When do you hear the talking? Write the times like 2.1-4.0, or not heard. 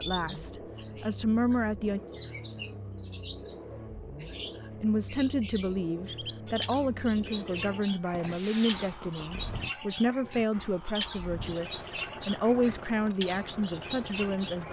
0.0-2.0, 4.8-14.6.